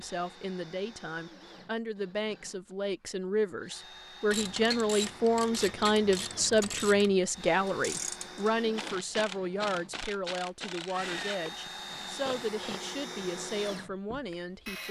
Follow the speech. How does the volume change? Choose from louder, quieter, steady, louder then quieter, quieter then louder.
louder then quieter.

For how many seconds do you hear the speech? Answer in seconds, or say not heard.
15 s.